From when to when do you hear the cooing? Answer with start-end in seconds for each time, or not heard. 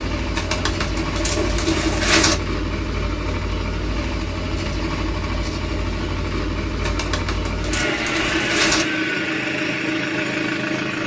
0.3-2.4, 6.8-8.8.